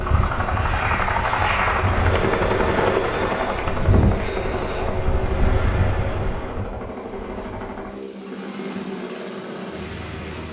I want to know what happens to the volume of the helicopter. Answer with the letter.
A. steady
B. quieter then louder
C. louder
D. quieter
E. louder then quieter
D.